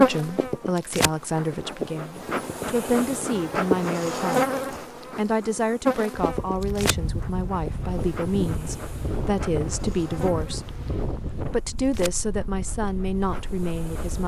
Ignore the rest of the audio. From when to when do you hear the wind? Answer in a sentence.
You can hear the wind from 6.3 to 14.2 s.